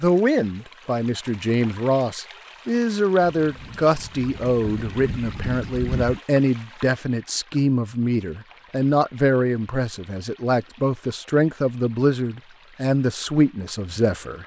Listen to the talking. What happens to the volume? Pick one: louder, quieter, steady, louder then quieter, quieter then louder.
steady.